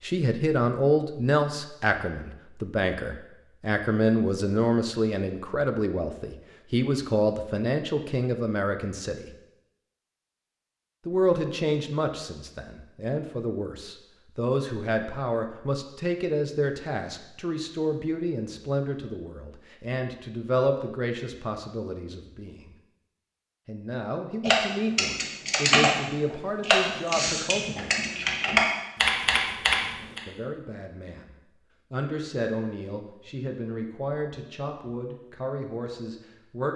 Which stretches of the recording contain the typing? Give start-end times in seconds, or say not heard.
24.4-30.2.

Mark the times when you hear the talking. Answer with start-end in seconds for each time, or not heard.
0.0-9.3, 11.1-22.7, 23.6-28.1, 30.2-31.3, 31.9-36.7.